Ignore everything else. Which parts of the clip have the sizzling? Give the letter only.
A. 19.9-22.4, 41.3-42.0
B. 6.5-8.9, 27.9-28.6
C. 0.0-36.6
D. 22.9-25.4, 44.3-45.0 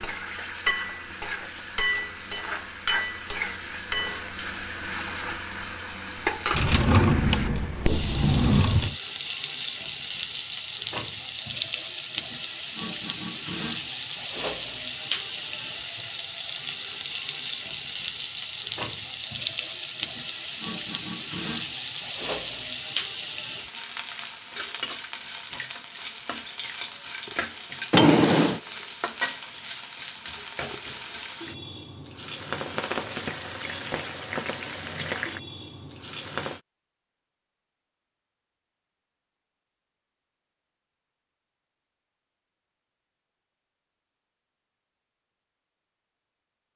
C.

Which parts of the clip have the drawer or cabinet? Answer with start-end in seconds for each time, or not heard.
6.5-8.9, 27.9-28.6.